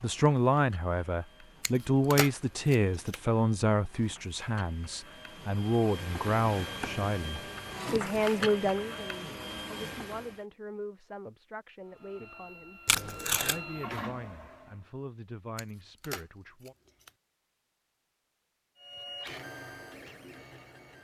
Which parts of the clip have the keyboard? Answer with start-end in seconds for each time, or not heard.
not heard.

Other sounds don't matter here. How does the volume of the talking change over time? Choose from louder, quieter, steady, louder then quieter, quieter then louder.
quieter.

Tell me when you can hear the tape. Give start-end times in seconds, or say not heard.
12.8-13.6.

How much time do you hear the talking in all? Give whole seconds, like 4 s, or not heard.
17 s.